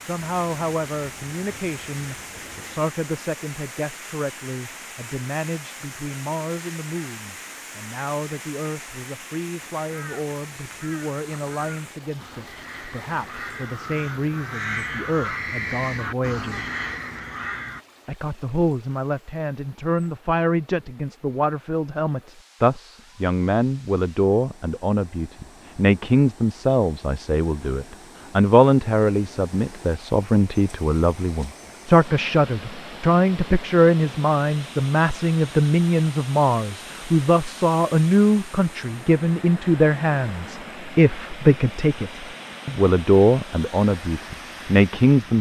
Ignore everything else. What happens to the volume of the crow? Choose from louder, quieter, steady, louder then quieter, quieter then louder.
louder.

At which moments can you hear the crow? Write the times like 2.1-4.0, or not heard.
9.7-17.9.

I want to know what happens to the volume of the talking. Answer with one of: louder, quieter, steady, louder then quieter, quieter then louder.
louder.